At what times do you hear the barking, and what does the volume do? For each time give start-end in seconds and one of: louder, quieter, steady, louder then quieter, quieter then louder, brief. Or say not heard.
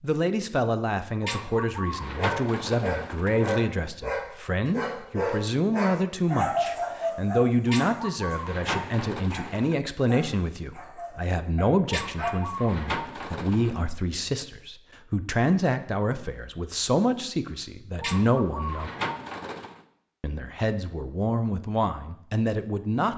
2.1-12.7 quieter.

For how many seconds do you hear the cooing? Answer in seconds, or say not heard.
8 s.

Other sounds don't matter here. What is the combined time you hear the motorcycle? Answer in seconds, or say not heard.
not heard.